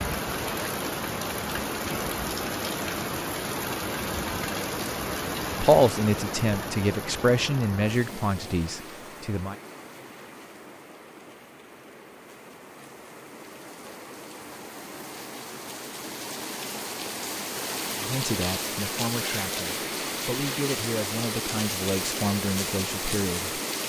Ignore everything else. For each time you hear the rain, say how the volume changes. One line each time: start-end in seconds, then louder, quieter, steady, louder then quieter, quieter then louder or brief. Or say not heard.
0.0-23.8 quieter then louder.